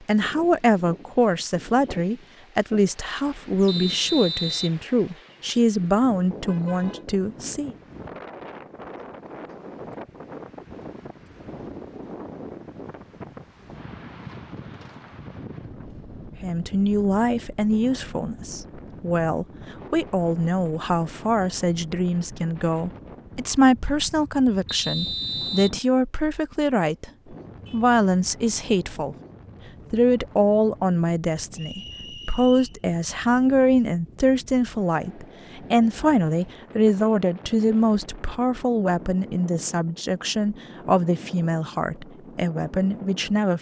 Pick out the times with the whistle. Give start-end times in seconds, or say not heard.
3.6-4.8, 24.6-25.8, 31.6-32.8.